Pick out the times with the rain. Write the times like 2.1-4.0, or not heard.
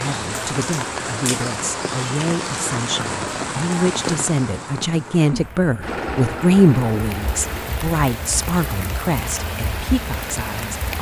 0.0-10.9.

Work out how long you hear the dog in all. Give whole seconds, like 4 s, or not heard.
not heard.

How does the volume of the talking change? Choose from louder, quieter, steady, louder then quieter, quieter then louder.
louder then quieter.